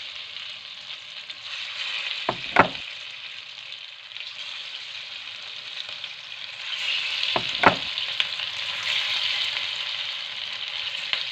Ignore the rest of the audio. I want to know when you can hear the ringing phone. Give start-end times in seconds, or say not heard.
2.2-2.7, 7.3-7.8.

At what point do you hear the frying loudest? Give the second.
9 s.